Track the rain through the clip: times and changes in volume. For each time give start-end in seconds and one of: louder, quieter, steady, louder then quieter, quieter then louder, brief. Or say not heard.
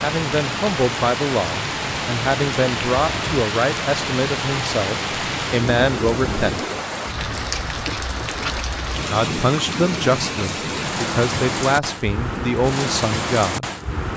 0.0-14.1 steady.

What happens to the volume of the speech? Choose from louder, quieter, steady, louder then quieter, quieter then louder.
steady.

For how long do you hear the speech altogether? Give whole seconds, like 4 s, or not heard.
11 s.